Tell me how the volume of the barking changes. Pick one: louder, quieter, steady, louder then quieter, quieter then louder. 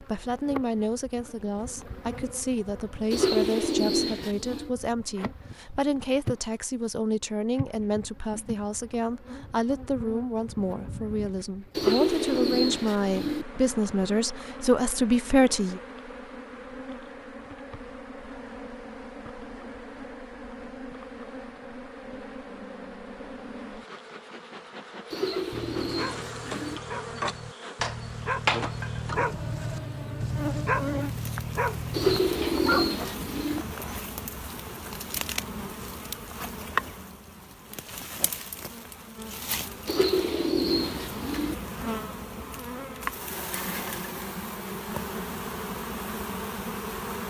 louder.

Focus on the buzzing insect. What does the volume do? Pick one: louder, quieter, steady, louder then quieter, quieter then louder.
louder.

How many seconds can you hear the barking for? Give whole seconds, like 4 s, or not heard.
8 s.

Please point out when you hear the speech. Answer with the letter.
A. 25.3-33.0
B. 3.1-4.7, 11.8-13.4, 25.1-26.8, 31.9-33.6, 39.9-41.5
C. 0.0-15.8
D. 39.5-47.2
C.